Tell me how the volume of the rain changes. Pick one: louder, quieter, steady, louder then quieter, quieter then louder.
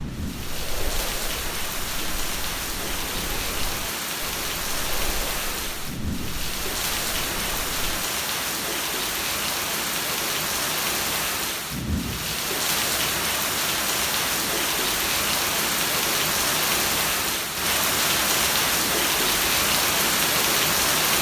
louder.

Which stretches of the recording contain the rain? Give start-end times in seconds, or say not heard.
0.0-21.1.